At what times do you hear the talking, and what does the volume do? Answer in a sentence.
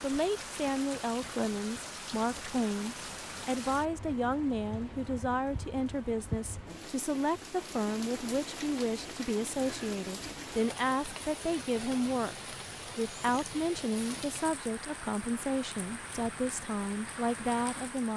You can hear the talking from 0.0 to 18.1 s, at a steady volume.